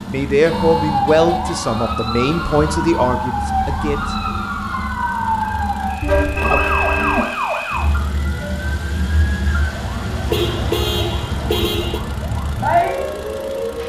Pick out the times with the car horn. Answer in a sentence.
The car horn can be heard from 0.4 to 2.8 s, from 6.0 to 7.2 s and from 10.3 to 12.0 s.